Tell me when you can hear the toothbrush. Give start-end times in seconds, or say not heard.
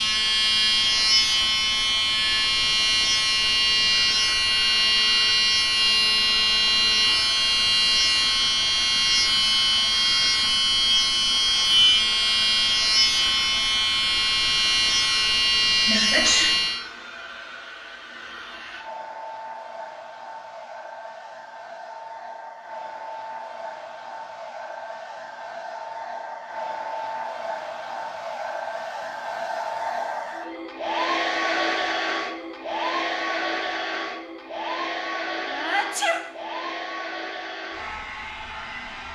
not heard.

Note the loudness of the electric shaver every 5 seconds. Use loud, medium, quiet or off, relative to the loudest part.
loud, loud, loud, loud, off, off, off, off.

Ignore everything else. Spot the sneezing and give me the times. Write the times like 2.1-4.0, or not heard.
15.8-16.6, 35.5-36.2.